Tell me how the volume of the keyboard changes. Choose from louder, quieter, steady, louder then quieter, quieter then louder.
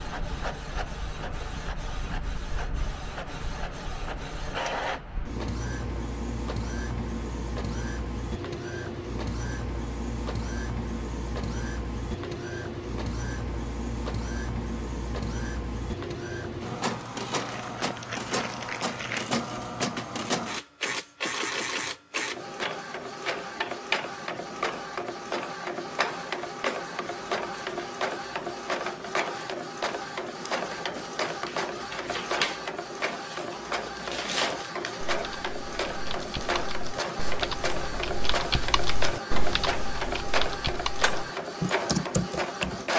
louder.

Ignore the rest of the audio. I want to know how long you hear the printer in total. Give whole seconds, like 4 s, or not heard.
43 s.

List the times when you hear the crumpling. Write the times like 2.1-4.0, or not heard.
17.4-19.3.